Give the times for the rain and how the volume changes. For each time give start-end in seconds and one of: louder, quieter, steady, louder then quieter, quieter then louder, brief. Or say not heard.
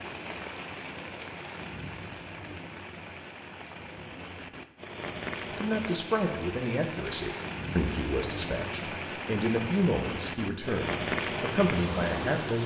0.0-12.6 louder.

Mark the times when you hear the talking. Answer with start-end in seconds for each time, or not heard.
5.5-12.6.